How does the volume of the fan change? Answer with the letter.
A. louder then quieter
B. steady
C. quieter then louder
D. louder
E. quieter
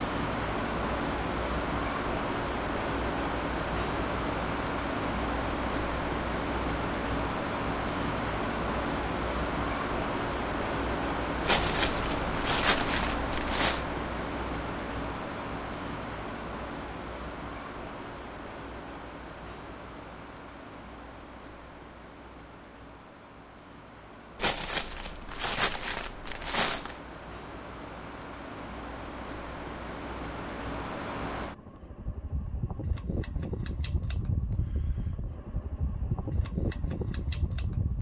C.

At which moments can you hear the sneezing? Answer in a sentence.
The sneezing can't be heard in this clip.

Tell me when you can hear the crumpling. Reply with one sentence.
You can hear the crumpling from 11.4 to 13.8 s and from 24.4 to 27.0 s.